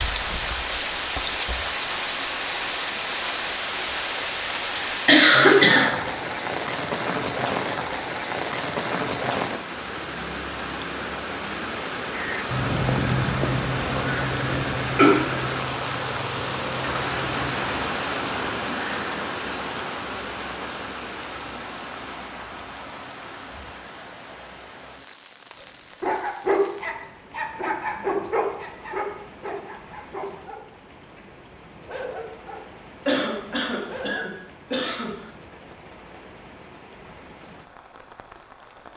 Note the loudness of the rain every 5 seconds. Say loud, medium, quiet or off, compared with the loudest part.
loud, loud, loud, loud, medium, quiet, quiet, quiet.